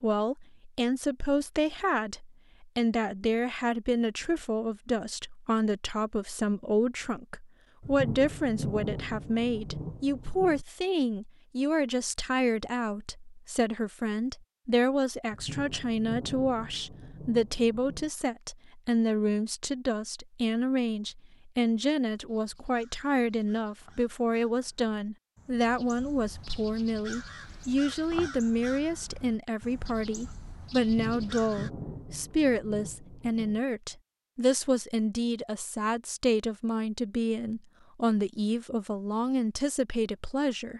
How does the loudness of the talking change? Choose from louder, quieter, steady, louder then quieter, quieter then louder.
steady.